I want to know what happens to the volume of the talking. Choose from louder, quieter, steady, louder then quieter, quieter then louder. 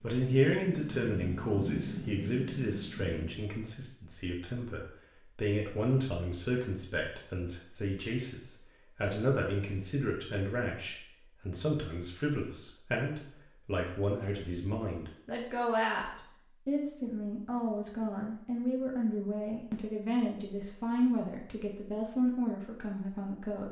steady.